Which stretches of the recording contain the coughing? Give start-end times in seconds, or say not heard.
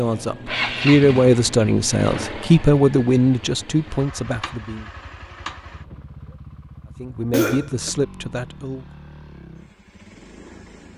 7.3-7.9.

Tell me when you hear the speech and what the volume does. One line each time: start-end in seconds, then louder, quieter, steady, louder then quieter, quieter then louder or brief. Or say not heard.
0.0-4.9 quieter
7.0-8.8 brief.